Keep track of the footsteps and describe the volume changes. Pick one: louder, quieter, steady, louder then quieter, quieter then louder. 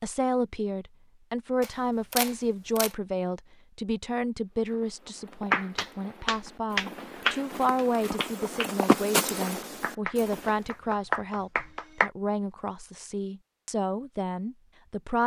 louder then quieter.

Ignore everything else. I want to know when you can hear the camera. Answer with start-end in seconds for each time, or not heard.
1.6-3.0.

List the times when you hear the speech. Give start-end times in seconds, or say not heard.
0.0-15.2.